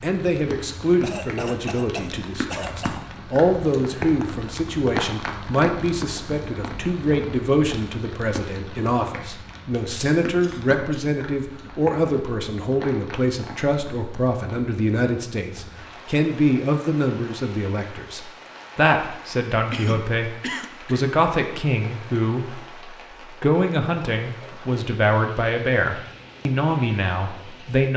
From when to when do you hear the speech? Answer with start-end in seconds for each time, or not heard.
0.0-27.9.